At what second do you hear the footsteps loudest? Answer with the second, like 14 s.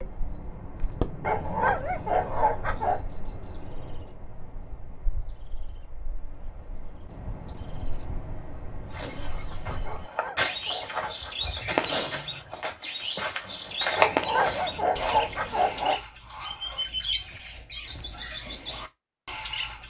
14 s.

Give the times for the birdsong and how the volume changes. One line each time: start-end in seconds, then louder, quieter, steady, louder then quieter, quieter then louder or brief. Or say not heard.
0.0-19.8 quieter then louder.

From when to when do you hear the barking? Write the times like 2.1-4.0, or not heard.
1.2-3.0, 9.8-11.6, 13.9-16.0.